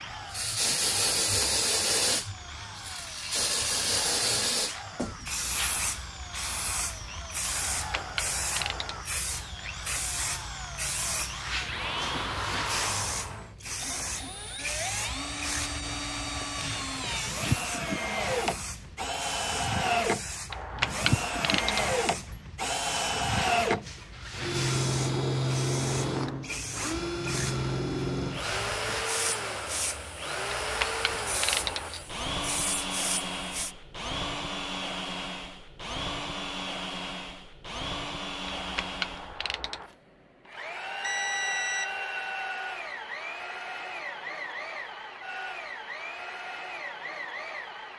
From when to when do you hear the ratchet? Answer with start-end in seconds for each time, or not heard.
7.6-9.1, 20.5-21.9, 30.4-31.9, 38.5-39.9.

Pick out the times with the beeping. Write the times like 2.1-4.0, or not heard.
41.0-41.9.